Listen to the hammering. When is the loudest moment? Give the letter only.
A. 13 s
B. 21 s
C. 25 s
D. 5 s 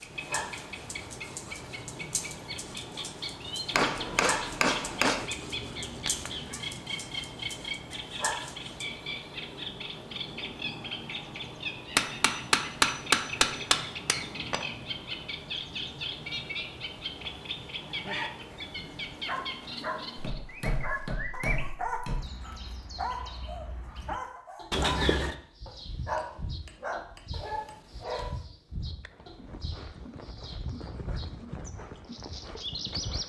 A.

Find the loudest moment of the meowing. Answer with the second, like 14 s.
25 s.